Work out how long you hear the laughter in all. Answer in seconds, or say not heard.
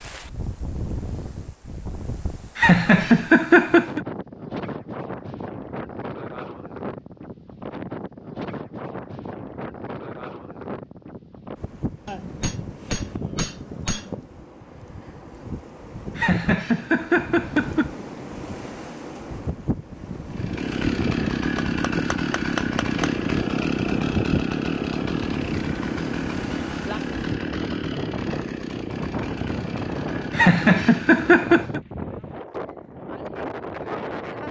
5 s.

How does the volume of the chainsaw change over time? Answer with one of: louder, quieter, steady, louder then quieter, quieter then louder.
quieter.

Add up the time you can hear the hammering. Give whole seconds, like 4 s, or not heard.
4 s.